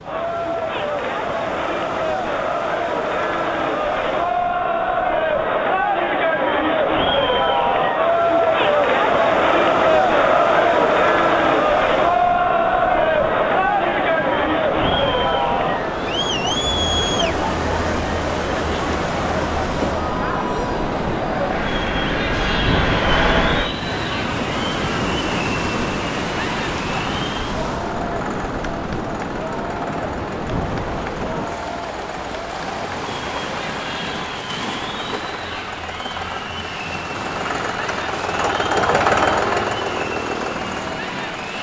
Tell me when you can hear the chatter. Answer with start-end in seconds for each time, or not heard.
0.0-41.5.